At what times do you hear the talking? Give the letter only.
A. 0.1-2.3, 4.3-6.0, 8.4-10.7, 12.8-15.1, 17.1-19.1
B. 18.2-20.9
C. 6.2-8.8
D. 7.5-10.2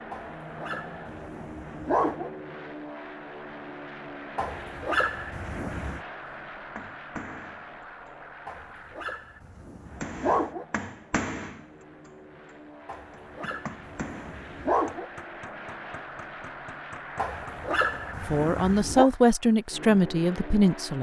B.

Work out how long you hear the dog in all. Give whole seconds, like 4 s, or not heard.
10 s.